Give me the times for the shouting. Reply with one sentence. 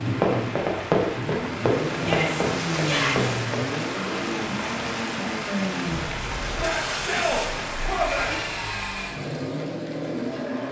You can hear the shouting from 2.0 to 3.4 s and from 6.5 to 8.3 s.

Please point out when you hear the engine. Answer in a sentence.
The engine can be heard from 0.0 to 10.6 s.